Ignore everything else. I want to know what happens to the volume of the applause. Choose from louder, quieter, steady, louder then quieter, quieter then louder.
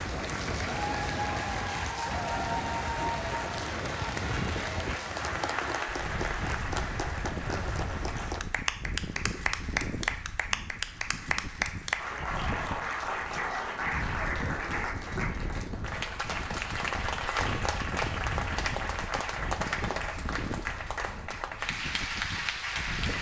steady.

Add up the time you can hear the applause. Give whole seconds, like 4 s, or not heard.
23 s.